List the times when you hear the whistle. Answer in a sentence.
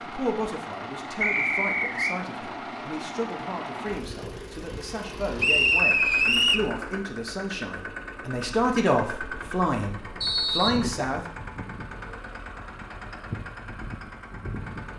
You can hear the whistle from 1.2 to 2.1 s, from 5.3 to 6.7 s and from 10.2 to 10.8 s.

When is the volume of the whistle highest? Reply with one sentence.
The loudest moment of the whistle is at 6 seconds.